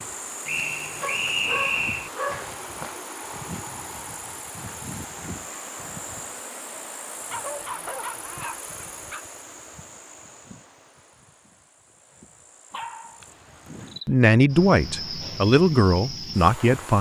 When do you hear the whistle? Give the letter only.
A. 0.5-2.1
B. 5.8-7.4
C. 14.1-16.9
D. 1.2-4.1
A.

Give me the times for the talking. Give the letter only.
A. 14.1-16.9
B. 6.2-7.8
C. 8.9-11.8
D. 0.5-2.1
A.